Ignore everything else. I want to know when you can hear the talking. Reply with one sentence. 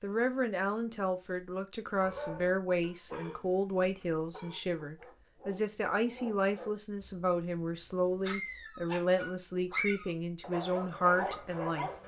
The talking can be heard from 0.0 to 11.9 s.